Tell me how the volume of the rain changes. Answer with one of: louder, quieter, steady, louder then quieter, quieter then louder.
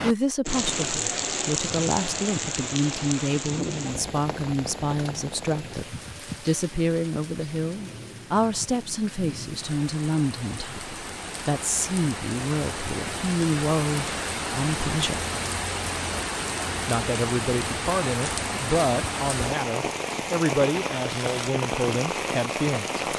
quieter then louder.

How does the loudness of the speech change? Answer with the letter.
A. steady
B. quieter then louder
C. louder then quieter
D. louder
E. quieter
A.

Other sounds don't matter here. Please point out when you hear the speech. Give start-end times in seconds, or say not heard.
0.0-15.2, 16.9-23.0.